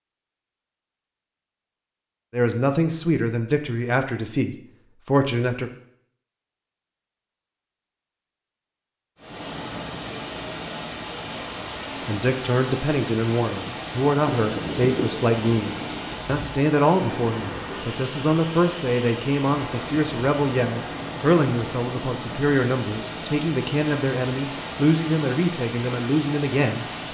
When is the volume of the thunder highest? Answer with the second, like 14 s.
15 s.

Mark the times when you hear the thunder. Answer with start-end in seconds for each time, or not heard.
14.3-16.2.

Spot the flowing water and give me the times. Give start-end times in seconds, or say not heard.
9.2-27.0.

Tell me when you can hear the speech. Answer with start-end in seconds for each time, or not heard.
2.3-5.7, 12.1-26.9.